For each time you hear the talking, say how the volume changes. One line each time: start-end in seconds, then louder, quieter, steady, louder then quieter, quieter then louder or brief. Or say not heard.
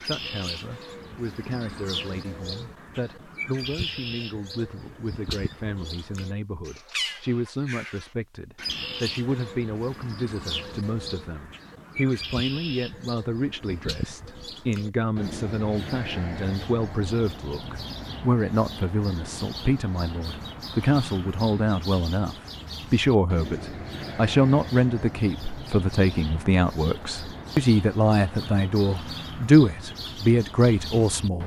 0.0-31.4 louder.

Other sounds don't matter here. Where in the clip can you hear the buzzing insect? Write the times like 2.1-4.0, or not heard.
not heard.